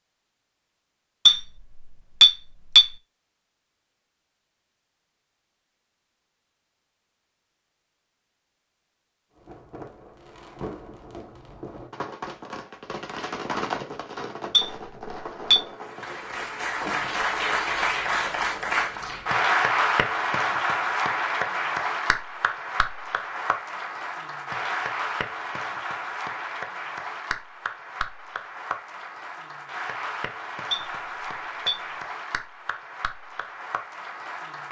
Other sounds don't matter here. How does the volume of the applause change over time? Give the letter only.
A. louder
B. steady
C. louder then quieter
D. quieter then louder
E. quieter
E.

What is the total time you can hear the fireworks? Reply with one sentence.
You can hear the fireworks for 8 seconds altogether.